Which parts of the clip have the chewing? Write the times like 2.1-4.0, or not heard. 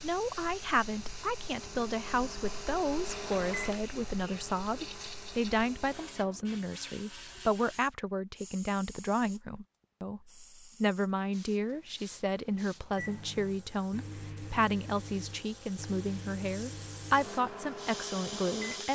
not heard.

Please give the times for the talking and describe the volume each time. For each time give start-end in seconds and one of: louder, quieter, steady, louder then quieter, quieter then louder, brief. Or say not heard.
0.0-18.9 steady.